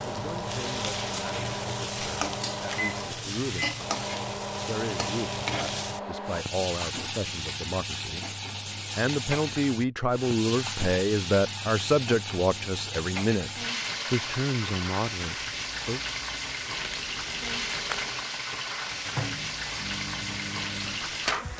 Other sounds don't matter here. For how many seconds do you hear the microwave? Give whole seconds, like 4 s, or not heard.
9 s.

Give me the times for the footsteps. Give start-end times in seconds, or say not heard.
not heard.